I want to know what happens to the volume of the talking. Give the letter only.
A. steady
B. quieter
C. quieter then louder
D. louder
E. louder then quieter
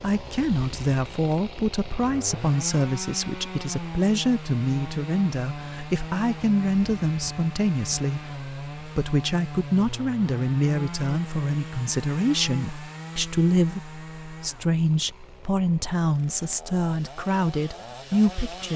A.